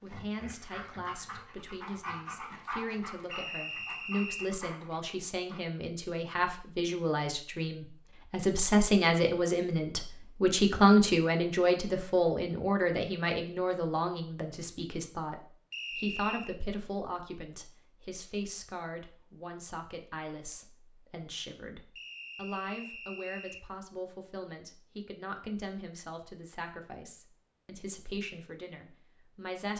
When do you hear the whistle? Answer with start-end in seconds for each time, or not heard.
3.3-4.5, 15.7-16.6, 21.9-23.6.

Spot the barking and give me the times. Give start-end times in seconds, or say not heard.
0.0-5.6.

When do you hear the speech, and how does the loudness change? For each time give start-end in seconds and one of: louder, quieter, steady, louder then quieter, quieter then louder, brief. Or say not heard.
0.0-29.7 louder then quieter.